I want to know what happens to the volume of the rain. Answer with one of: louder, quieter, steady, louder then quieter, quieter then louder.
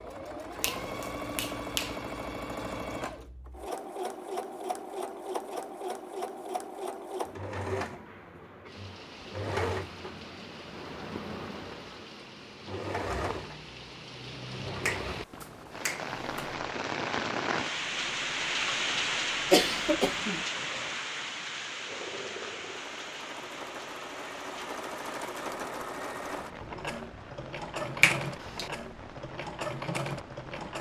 louder then quieter.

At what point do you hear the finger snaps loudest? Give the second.
28 s.